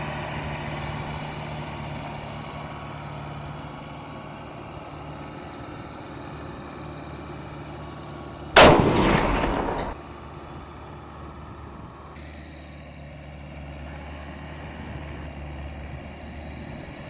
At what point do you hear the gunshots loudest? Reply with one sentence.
The loudest moment of the gunshots is at 9 seconds.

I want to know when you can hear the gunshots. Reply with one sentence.
You can hear the gunshots from 8.6 to 9.9 s.